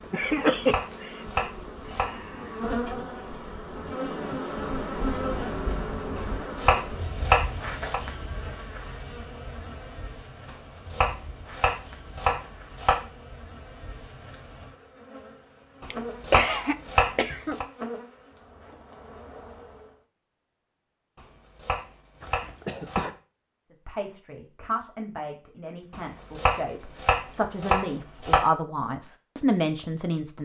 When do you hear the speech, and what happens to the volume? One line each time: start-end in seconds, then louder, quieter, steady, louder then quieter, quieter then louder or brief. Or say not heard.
23.9-30.4 quieter then louder.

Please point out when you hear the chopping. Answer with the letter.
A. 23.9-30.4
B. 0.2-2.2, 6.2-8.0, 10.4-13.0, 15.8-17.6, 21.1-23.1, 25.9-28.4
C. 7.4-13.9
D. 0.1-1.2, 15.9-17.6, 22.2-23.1
B.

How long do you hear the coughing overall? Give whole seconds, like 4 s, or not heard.
4 s.